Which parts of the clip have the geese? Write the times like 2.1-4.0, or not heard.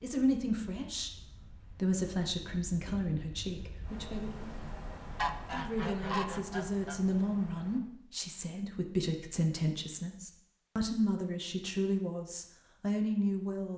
5.2-7.0.